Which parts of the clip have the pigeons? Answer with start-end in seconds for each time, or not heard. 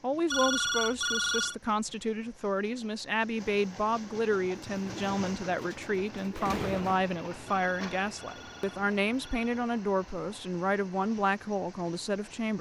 4.3-7.0.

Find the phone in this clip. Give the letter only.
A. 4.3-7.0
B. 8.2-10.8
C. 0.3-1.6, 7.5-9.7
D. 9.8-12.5
C.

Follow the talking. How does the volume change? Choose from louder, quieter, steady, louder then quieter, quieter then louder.
steady.